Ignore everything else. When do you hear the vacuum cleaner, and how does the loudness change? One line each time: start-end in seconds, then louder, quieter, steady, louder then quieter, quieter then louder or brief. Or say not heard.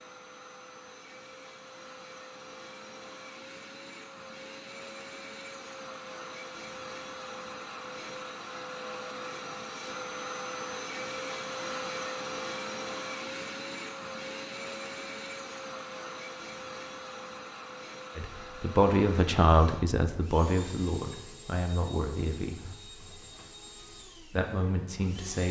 0.0-25.4 louder then quieter.